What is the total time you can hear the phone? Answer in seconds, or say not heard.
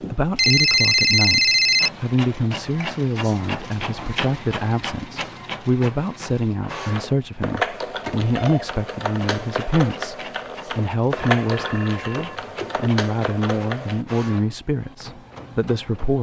4 s.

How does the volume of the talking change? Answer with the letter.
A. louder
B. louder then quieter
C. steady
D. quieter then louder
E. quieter
C.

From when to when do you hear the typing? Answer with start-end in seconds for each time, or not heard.
6.6-14.1.